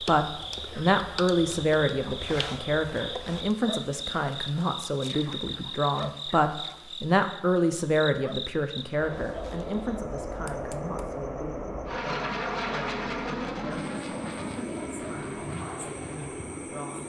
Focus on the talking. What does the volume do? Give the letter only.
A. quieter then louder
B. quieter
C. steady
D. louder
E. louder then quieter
B.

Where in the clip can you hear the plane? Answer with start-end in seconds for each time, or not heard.
0.2-3.5, 8.9-17.0.